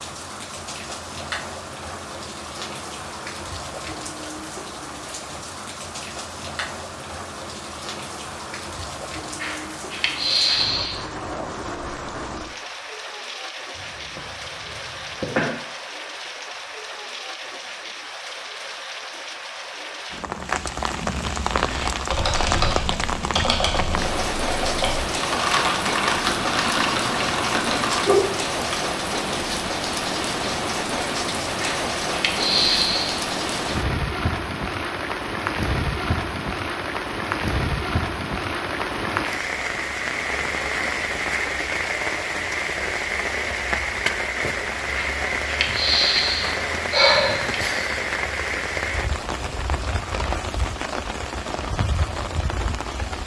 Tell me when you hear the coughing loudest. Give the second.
15 s.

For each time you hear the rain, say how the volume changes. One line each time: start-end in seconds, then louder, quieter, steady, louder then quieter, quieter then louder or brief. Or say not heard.
0.0-53.2 louder.